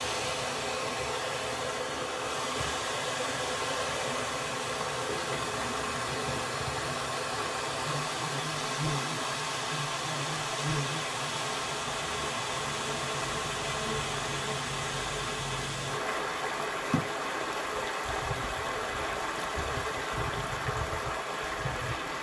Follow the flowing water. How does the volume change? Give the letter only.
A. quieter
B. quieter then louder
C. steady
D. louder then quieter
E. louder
C.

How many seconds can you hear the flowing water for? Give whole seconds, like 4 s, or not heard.
22 s.